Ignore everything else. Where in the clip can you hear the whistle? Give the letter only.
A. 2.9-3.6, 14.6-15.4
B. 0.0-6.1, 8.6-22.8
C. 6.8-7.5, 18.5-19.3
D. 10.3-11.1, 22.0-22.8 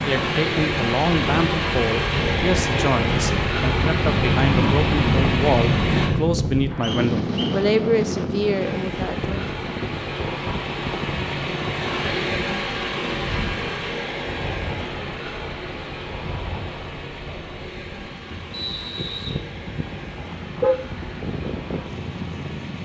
C.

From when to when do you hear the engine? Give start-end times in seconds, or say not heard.
0.0-6.1, 8.6-22.8.